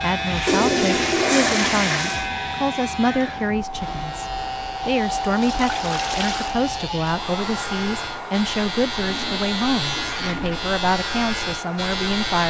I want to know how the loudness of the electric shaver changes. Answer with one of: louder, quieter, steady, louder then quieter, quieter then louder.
quieter then louder.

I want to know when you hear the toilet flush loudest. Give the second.
1 s.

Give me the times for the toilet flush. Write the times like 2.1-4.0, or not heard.
0.5-2.3, 5.4-6.5, 8.9-10.7.